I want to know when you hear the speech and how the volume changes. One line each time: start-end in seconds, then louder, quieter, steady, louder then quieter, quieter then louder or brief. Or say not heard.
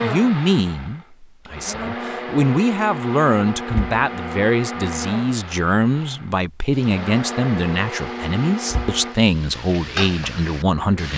0.0-11.1 steady.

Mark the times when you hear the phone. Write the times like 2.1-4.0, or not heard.
not heard.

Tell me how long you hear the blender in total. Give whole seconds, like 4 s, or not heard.
9 s.